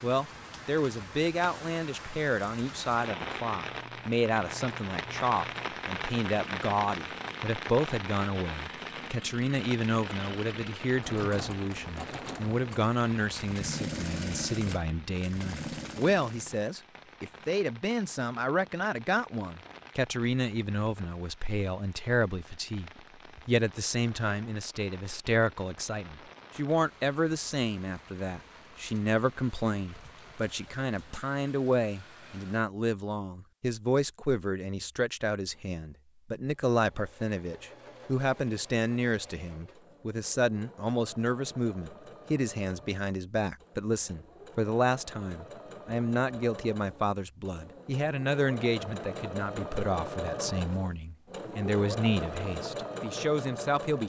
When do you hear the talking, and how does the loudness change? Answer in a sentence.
The talking can be heard from 0.0 to 54.0 s, at a steady volume.